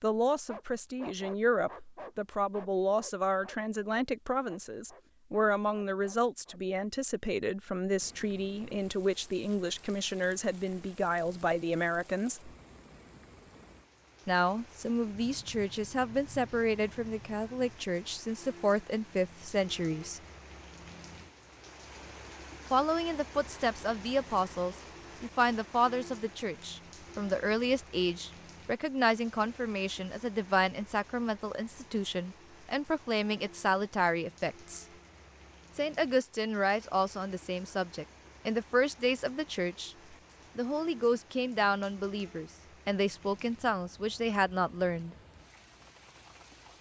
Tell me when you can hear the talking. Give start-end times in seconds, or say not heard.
0.0-12.5, 14.2-20.2, 22.7-34.9, 35.8-40.0, 40.5-45.1.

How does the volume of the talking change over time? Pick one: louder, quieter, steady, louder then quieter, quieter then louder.
steady.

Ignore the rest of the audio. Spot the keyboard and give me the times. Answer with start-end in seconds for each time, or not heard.
not heard.